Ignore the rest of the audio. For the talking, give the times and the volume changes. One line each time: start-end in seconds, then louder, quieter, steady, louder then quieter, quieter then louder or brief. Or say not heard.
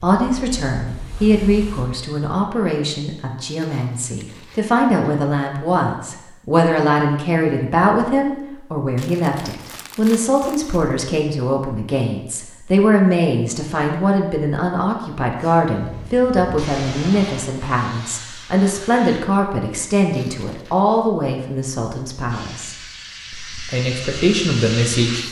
0.0-25.2 steady.